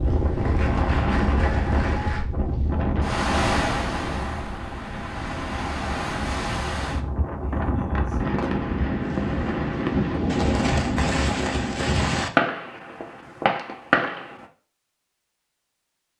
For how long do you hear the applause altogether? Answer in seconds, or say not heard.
2 s.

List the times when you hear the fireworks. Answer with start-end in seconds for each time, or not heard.
8.2-14.4.